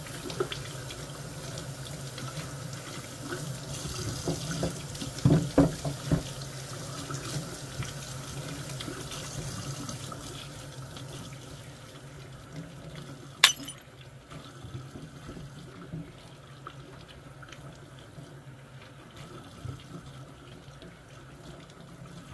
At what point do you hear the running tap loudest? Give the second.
6 s.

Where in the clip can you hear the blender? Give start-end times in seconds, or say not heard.
not heard.